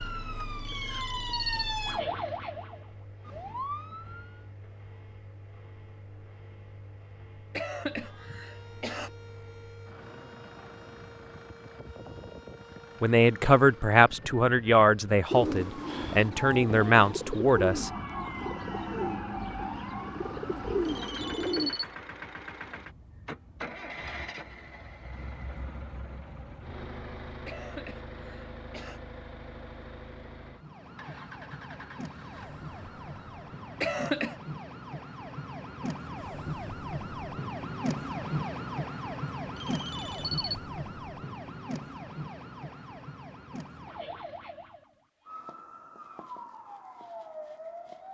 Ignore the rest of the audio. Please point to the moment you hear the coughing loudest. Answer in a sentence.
The loudest moment of the coughing is at 34 seconds.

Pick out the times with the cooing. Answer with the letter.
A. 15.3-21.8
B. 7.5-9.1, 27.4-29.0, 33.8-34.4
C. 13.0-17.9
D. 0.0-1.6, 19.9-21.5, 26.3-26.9
A.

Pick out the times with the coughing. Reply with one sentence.
The coughing can be heard from 7.5 to 9.1 s, from 27.4 to 29.0 s and from 33.8 to 34.4 s.